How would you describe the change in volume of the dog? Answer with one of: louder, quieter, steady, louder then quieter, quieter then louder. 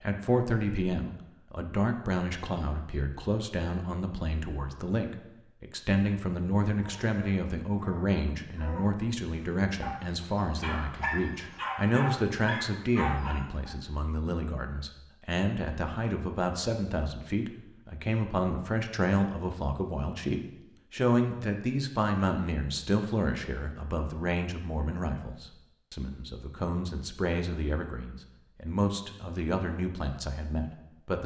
louder.